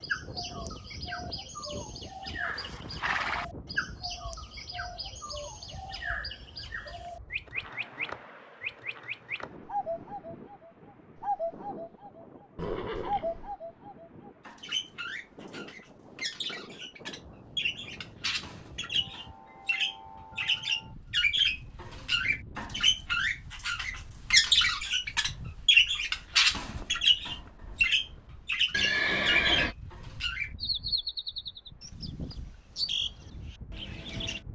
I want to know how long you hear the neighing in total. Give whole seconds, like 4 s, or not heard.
3 s.